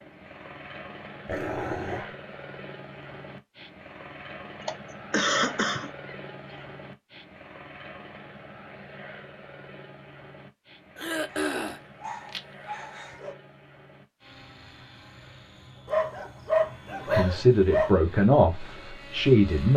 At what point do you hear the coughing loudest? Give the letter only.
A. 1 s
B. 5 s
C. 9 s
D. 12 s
B.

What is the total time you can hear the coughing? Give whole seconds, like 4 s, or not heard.
2 s.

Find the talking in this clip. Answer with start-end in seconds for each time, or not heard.
17.1-19.7.